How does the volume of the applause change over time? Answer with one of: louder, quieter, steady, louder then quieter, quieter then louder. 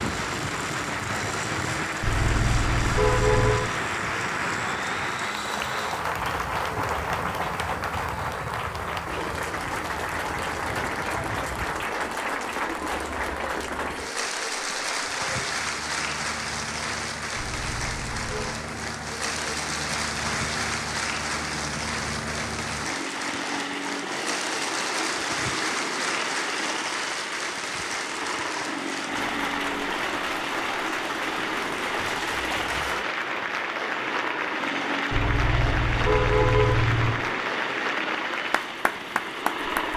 steady.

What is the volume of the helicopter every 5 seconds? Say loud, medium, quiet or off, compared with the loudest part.
loud, medium, medium, medium, loud, loud, loud, loud.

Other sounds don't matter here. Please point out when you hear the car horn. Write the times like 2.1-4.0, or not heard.
2.0-3.6, 17.6-18.6, 35.1-37.1.